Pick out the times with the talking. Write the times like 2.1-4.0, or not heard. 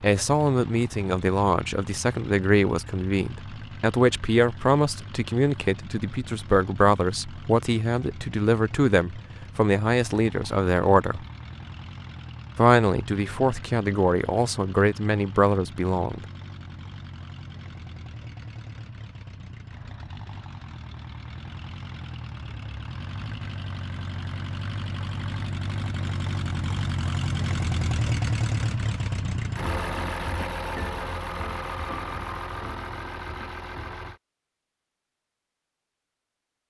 0.0-11.2, 12.6-16.2.